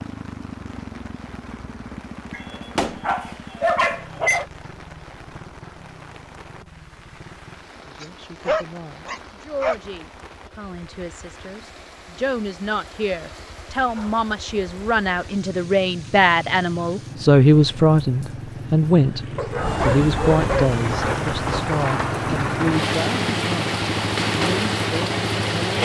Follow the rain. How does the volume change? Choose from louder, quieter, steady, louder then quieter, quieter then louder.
louder.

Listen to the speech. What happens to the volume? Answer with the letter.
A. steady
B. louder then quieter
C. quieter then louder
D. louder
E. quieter
B.